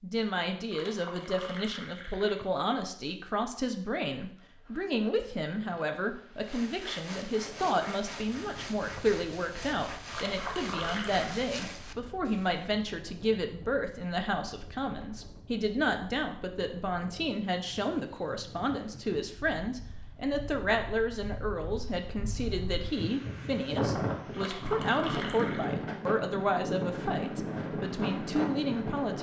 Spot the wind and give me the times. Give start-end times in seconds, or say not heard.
7.2-29.1.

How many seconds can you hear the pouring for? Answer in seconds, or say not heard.
5 s.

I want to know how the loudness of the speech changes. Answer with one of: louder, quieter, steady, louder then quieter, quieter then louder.
steady.